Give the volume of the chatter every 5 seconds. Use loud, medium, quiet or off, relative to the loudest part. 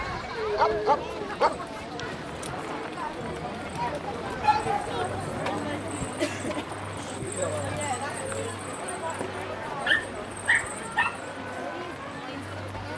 loud, loud, medium.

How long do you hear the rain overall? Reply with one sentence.
You can hear the rain for 11 seconds altogether.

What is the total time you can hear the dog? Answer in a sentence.
The dog can be heard for 5 seconds in total.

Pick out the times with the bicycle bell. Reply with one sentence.
The bicycle bell can't be heard in this clip.